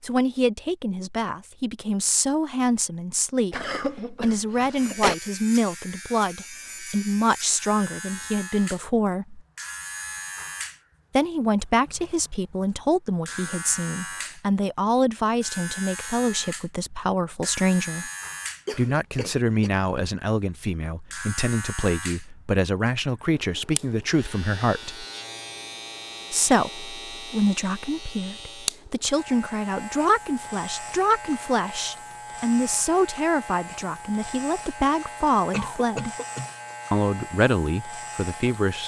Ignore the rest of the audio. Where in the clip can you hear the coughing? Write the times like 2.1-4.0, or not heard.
3.5-5.2, 18.6-19.7, 35.5-36.5.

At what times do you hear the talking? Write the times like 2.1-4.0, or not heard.
0.0-9.4, 11.2-18.1, 18.7-25.1, 26.3-36.1, 36.9-38.8.